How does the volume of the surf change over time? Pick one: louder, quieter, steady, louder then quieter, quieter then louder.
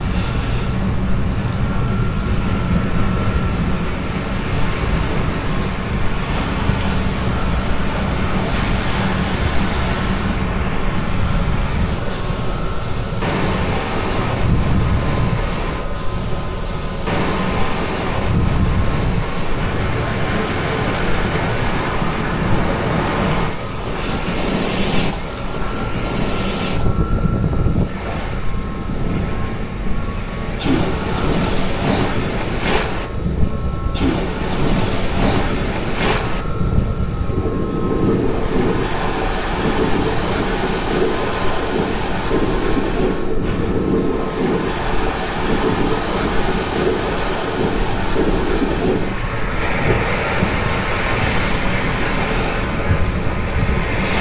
steady.